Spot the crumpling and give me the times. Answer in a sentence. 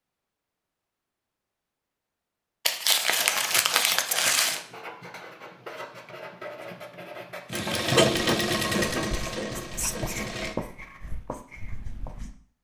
The crumpling can be heard from 2.6 to 4.6 s.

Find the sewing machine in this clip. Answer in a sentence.
You can hear the sewing machine from 7.5 to 10.6 s.